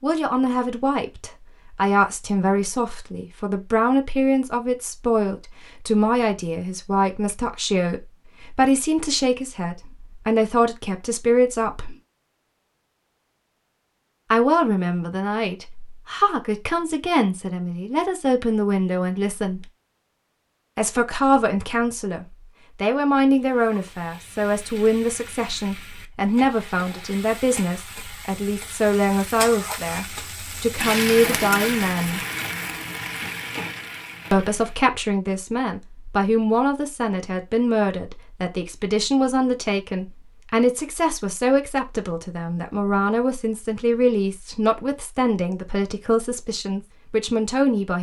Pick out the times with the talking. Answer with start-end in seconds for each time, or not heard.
0.0-11.9, 14.3-19.6, 20.8-32.2, 34.3-47.9.